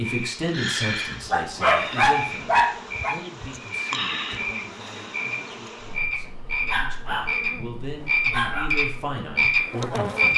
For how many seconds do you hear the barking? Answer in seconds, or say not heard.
3 s.